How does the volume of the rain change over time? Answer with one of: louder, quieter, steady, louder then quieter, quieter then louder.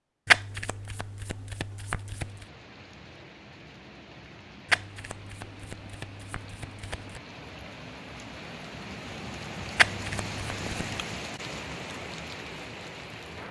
louder.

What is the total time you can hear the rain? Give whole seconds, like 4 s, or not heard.
11 s.